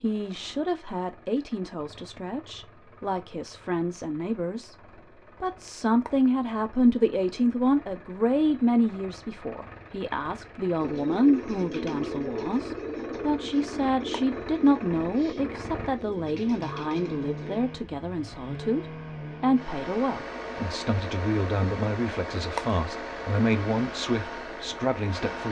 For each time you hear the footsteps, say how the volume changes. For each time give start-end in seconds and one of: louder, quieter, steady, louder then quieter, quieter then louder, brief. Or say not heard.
not heard.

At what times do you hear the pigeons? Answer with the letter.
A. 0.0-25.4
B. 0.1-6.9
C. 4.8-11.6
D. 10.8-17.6
D.